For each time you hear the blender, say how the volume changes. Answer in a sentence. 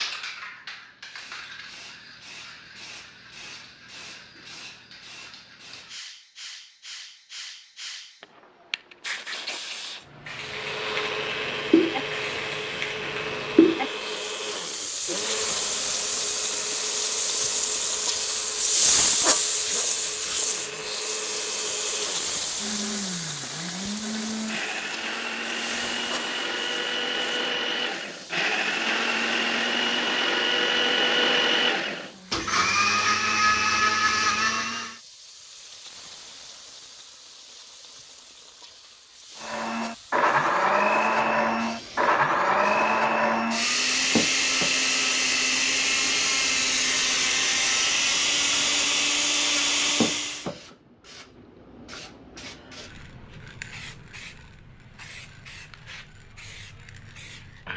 You can hear the blender from 10.3 to 35.0 s, getting quieter then louder; and from 39.4 to 50.5 s, at a steady volume.